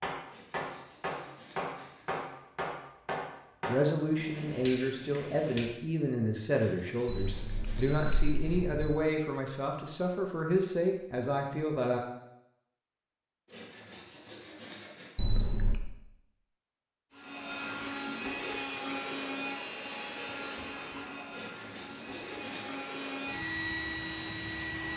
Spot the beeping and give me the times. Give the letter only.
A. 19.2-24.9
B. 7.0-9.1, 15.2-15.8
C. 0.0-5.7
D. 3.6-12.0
B.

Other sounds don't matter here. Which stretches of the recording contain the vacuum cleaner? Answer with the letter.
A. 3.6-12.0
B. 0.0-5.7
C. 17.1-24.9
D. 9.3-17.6
C.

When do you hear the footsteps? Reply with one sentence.
You can't hear the footsteps here.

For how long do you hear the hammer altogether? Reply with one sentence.
The hammer can be heard for 6 seconds in total.